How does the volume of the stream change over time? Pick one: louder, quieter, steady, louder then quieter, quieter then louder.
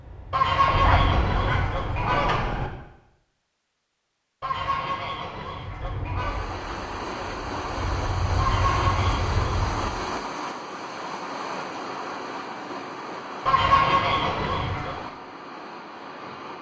quieter.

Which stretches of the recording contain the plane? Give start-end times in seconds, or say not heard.
0.0-1.8, 5.6-10.1.